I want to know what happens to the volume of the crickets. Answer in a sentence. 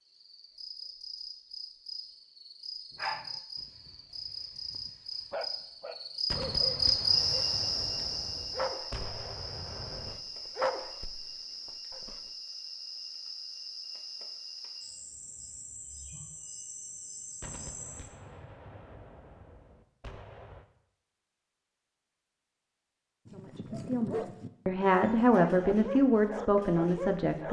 The loudness of the crickets goes up, then down.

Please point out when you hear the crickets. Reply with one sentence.
You can hear the crickets from 0.0 to 18.1 s.